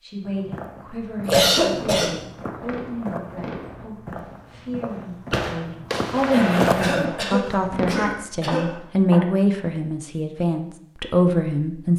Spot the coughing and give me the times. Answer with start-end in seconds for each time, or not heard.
1.2-2.2, 6.3-8.7.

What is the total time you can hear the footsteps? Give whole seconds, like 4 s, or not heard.
8 s.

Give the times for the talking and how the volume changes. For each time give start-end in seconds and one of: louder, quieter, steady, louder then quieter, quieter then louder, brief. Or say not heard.
0.0-11.9 louder.